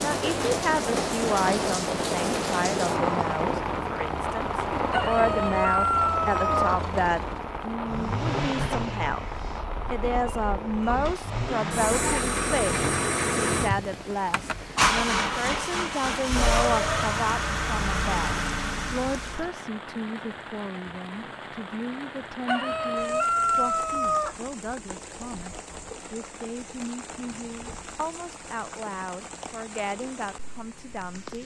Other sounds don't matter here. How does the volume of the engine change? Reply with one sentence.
The loudness of the engine goes up.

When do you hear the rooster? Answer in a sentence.
You can hear the rooster from 4.9 to 6.8 s and from 22.4 to 24.4 s.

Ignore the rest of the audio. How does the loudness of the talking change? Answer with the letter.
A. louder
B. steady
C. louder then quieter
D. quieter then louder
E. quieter
E.